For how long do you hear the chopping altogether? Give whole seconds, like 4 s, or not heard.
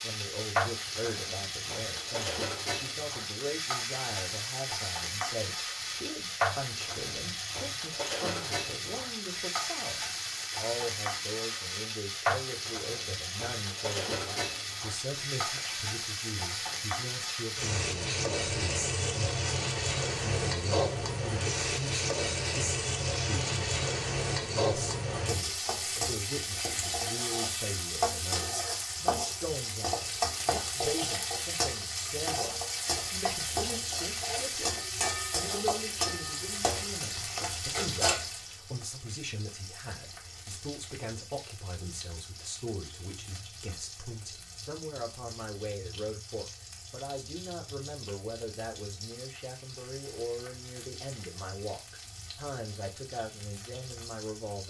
not heard.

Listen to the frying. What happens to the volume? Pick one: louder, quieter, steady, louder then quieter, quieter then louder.
quieter.